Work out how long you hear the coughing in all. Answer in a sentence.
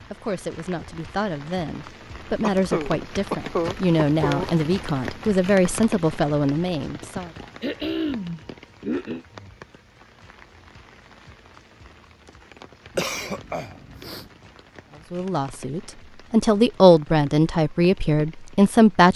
You can hear the coughing for 6 seconds altogether.